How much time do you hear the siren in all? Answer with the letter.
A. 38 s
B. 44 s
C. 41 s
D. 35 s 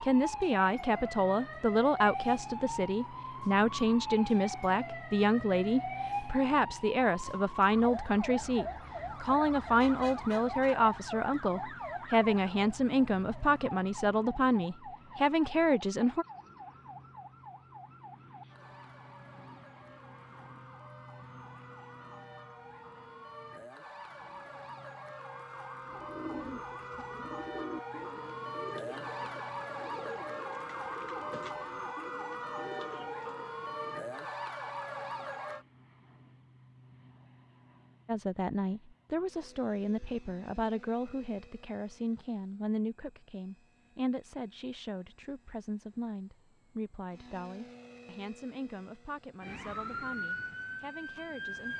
A.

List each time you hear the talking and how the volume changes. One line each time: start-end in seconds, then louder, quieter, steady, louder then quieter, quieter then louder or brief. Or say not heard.
0.0-16.2 steady
38.0-51.7 quieter.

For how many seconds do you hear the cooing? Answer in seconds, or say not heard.
8 s.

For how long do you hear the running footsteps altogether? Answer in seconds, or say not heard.
not heard.